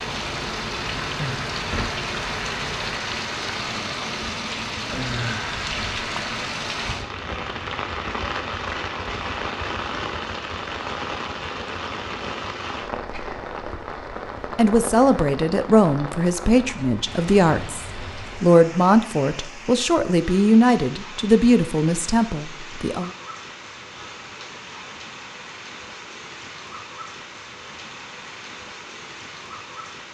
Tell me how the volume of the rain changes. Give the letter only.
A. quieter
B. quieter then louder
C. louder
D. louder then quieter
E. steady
A.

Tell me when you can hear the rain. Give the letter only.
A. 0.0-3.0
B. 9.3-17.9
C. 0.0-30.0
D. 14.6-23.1
C.